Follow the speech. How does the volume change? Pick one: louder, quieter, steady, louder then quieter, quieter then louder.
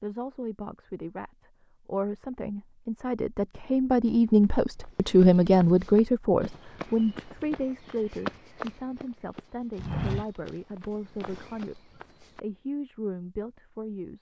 louder then quieter.